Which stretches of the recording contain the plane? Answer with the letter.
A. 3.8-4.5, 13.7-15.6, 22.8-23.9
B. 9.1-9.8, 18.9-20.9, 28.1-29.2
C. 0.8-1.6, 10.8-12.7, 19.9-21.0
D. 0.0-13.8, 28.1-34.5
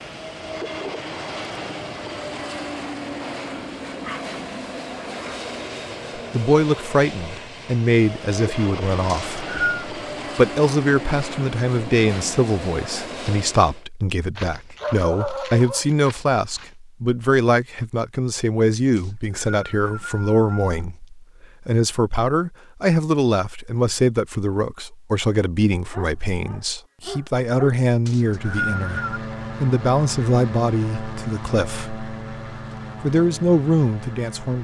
D.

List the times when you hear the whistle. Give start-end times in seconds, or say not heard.
9.1-9.8, 18.9-20.9, 28.1-29.2.